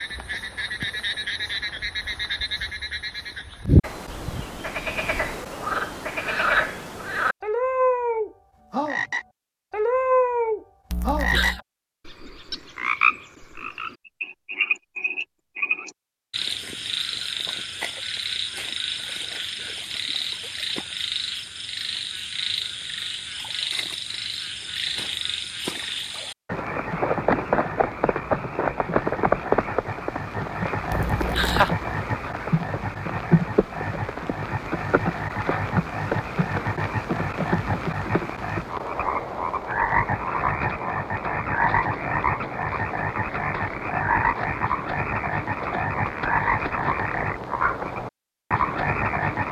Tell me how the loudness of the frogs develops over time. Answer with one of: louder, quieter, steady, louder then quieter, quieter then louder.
steady.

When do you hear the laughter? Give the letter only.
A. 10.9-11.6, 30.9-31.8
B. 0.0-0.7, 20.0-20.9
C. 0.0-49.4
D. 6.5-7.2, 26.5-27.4
A.